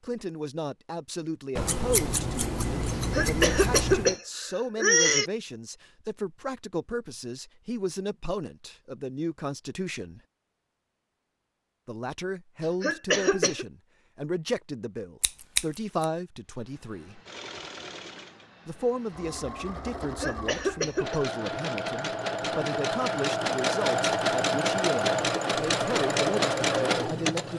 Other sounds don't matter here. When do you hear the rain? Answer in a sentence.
You can't hear the rain here.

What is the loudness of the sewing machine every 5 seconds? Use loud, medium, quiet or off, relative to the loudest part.
off, off, off, quiet, loud, loud.